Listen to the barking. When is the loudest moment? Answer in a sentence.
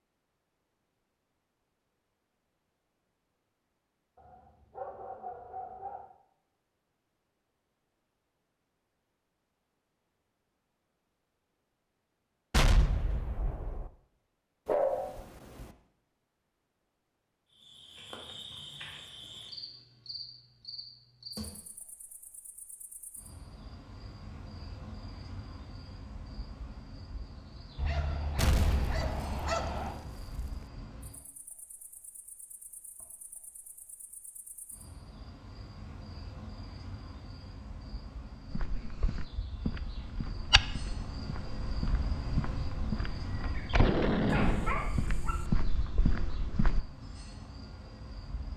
The loudest moment of the barking is at 15 seconds.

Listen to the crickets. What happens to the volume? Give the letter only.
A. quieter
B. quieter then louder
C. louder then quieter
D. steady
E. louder
B.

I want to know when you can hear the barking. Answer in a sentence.
The barking can be heard from 4.2 to 6.1 s, from 14.7 to 15.8 s, from 27.8 to 30.0 s and from 44.3 to 45.5 s.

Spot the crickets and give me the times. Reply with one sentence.
The crickets can be heard from 17.5 to 48.5 s.